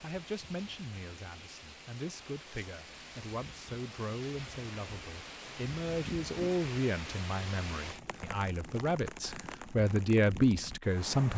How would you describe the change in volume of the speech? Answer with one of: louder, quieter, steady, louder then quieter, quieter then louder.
louder.